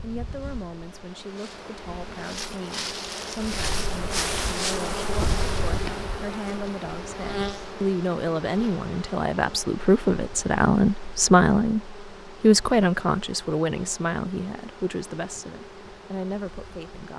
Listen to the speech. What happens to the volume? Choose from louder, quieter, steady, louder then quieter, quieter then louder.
louder then quieter.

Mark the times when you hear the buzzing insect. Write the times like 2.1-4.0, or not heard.
0.0-17.1.